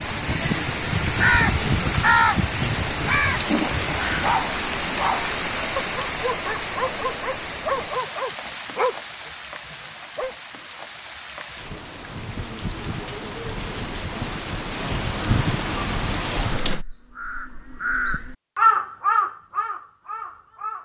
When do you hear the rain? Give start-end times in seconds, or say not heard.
0.0-16.9.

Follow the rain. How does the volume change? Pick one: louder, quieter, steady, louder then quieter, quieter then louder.
quieter then louder.